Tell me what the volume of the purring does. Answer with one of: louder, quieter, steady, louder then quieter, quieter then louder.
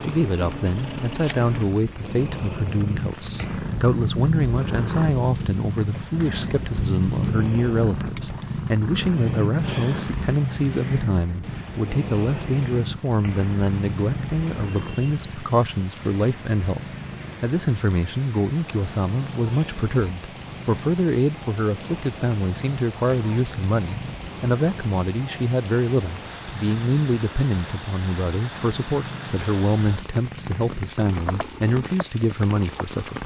quieter.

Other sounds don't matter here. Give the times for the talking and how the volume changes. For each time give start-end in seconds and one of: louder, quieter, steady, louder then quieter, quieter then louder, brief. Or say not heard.
0.0-33.2 steady.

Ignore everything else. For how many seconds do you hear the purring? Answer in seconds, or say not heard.
33 s.